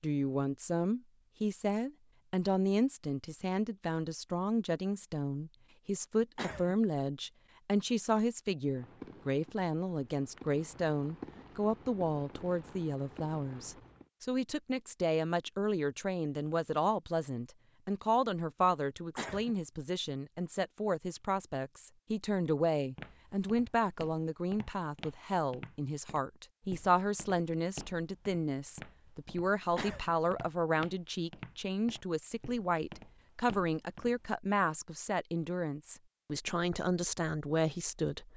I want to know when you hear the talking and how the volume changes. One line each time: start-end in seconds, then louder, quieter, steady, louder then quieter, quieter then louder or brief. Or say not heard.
0.0-38.3 steady.